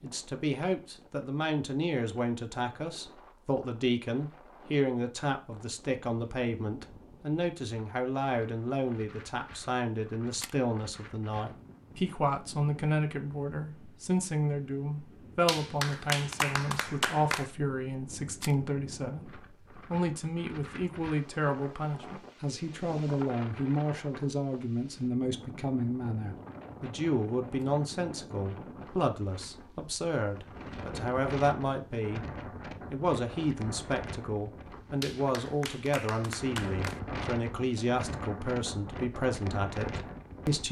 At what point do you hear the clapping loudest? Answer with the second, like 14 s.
16 s.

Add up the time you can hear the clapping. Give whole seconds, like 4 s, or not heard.
4 s.